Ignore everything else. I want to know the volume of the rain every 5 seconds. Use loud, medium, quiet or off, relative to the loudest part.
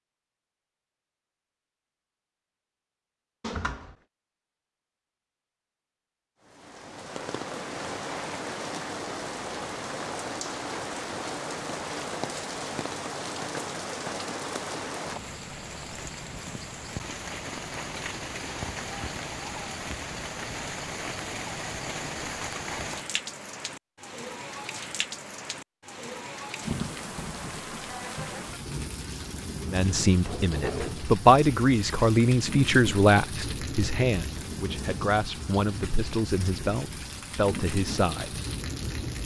off, loud, loud, loud, loud, loud, loud, loud.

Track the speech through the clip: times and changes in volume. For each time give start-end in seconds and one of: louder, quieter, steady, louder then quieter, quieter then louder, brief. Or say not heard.
29.7-38.4 quieter.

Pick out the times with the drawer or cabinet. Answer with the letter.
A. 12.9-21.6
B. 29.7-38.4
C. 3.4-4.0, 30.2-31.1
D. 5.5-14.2
C.